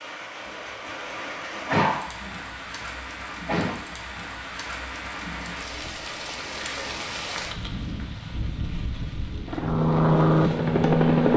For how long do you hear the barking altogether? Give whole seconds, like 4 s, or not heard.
2 s.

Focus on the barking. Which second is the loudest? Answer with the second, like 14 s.
2 s.